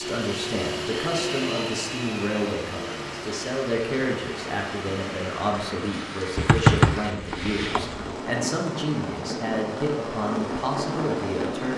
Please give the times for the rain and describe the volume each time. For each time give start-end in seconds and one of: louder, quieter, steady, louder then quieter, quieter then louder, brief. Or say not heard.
0.0-11.7 louder.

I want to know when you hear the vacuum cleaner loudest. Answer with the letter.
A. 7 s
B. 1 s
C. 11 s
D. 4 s
B.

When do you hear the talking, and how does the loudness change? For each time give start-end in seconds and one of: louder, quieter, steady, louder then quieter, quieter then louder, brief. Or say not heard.
0.0-11.7 steady.